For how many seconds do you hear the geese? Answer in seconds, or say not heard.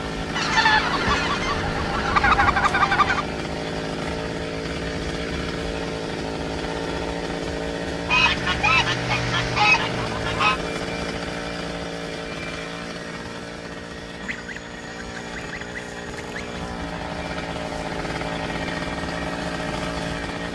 8 s.